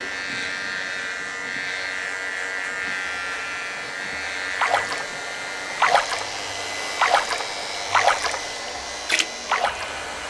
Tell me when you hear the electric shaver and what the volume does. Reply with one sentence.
You can hear the electric shaver from 0.0 to 10.2 s, getting quieter.